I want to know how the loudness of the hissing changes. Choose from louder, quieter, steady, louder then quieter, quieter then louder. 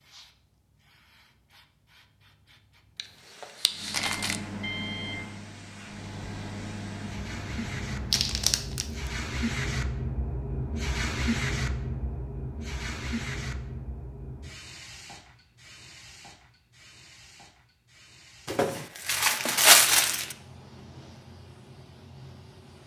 louder then quieter.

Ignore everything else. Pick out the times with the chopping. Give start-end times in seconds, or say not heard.
not heard.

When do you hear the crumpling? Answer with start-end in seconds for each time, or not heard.
3.0-4.3, 8.1-8.8, 18.4-20.4.